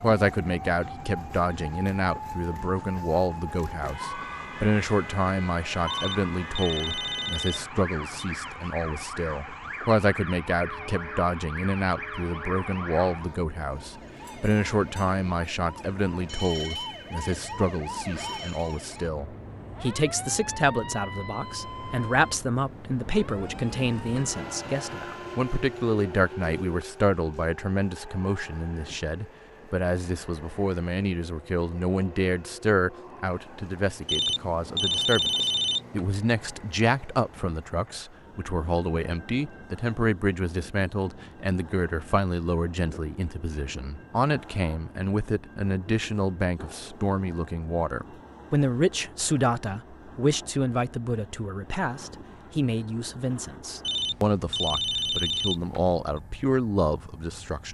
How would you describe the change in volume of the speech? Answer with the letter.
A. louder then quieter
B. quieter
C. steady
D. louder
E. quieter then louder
C.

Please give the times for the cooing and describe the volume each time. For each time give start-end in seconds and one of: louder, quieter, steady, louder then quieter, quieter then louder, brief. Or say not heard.
not heard.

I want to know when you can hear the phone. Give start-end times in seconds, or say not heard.
5.8-8.3, 34.0-36.0, 53.8-56.0.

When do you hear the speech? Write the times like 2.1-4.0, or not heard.
0.0-57.6.